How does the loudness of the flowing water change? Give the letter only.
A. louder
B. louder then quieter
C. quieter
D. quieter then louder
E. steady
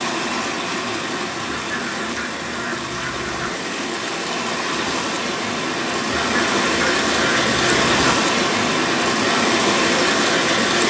A.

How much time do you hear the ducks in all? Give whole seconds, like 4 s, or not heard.
4 s.